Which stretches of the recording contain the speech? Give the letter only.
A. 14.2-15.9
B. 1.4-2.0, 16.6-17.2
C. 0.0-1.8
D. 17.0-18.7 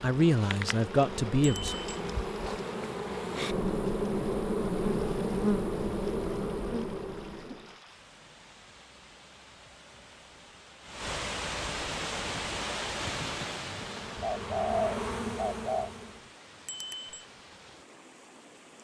C.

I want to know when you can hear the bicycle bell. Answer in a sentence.
You can hear the bicycle bell from 1.4 to 2.0 s and from 16.6 to 17.2 s.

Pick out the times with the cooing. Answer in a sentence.
You can hear the cooing from 14.2 to 15.9 s.